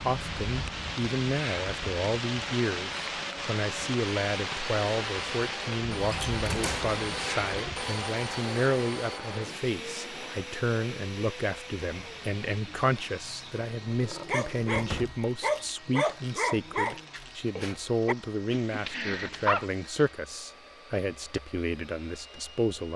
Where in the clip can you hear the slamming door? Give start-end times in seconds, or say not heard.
6.0-7.0, 14.8-15.2.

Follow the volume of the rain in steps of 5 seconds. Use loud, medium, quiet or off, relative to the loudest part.
loud, loud, quiet, off, off.